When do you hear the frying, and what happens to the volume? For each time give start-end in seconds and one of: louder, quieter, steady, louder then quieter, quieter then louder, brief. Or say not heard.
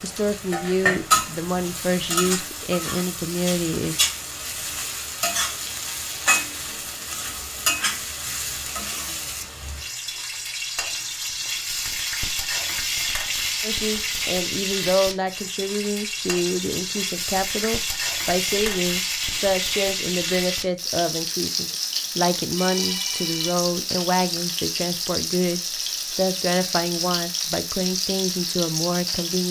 0.0-29.4 steady.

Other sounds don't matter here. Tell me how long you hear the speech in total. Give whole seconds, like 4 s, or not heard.
20 s.